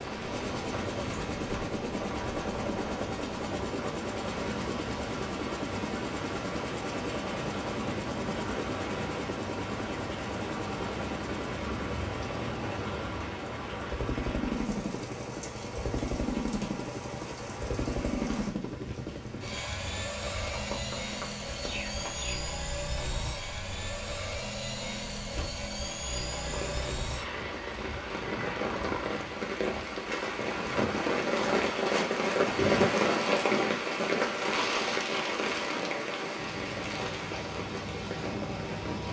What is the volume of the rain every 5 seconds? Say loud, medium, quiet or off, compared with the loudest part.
quiet, quiet, quiet, quiet, quiet, medium, loud, medium.